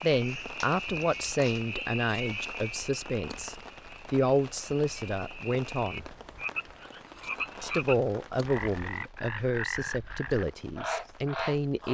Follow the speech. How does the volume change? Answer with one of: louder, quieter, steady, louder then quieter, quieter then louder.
steady.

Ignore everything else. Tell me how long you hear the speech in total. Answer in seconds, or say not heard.
10 s.